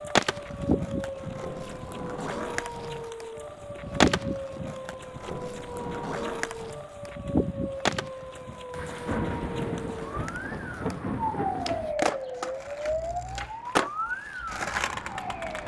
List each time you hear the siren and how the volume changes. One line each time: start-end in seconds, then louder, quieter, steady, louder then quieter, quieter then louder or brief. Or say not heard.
0.0-15.6 steady.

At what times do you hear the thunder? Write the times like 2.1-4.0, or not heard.
8.7-11.9.